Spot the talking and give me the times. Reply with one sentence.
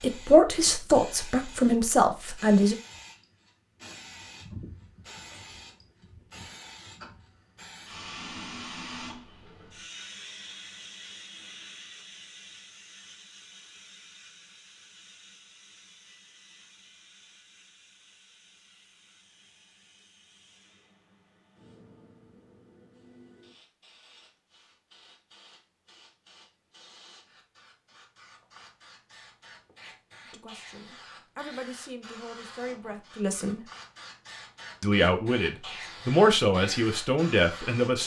You can hear the talking from 0.0 to 2.8 s, from 30.2 to 33.6 s and from 34.8 to 38.0 s.